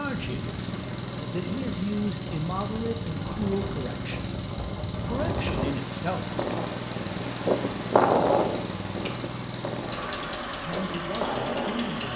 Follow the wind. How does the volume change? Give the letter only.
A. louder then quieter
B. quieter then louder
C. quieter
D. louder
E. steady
A.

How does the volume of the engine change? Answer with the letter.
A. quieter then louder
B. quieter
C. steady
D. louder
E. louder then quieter
C.